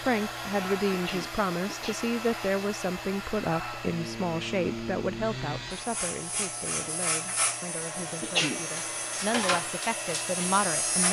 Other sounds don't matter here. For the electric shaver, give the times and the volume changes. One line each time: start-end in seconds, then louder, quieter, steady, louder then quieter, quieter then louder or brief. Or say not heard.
0.0-11.0 louder.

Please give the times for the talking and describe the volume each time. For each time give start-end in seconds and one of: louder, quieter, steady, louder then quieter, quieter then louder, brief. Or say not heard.
0.0-11.0 quieter then louder.